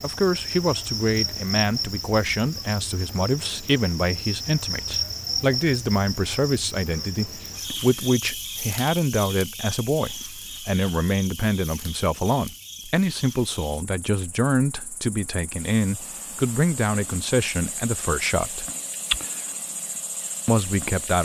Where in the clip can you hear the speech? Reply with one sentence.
You can hear the speech from 0.0 to 18.6 s and from 20.4 to 21.1 s.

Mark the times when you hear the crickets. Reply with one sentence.
You can hear the crickets from 0.0 to 21.1 s.